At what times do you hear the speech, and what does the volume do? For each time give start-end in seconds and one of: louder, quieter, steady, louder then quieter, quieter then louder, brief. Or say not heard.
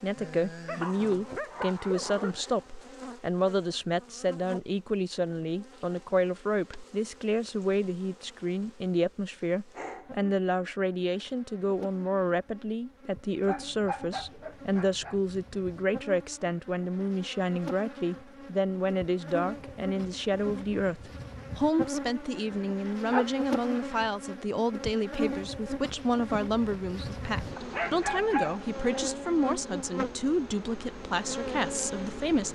0.0-32.5 steady.